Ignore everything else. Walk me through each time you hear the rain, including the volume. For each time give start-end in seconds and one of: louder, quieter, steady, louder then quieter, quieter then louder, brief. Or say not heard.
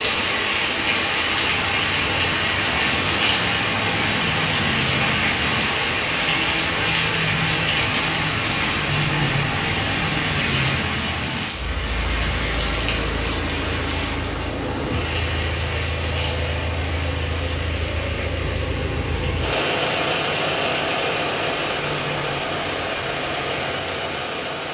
0.0-24.4 quieter.